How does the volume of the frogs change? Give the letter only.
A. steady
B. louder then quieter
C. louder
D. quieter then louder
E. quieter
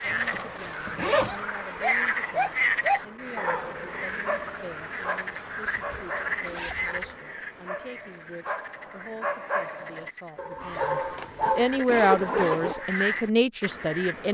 D.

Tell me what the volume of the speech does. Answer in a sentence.
The loudness of the speech goes up.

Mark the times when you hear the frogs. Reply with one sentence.
The frogs can be heard from 0.0 to 14.2 s.